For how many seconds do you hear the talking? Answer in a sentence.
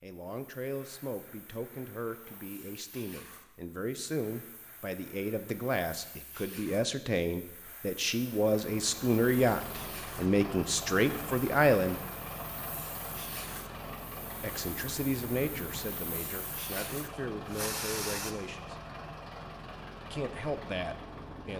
You can hear the talking for 18 seconds altogether.